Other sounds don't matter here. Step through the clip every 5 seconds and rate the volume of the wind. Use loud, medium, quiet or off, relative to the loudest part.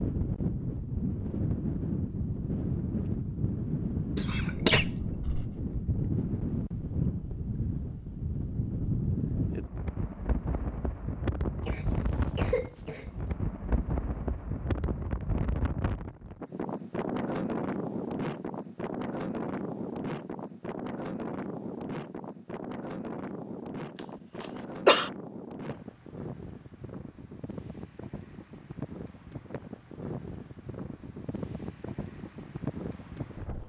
loud, loud, loud, loud, medium, medium, medium.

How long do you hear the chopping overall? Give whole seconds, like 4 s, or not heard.
not heard.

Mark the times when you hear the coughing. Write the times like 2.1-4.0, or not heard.
4.2-5.5, 11.7-13.1, 24.4-25.1.